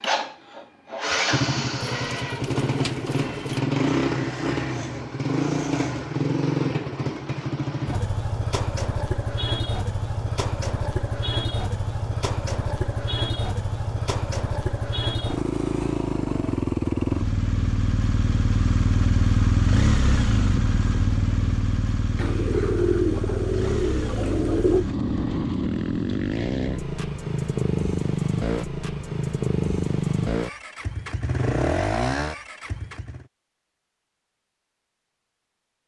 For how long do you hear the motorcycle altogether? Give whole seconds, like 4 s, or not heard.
33 s.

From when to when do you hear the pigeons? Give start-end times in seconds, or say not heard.
1.8-3.6, 22.1-24.9.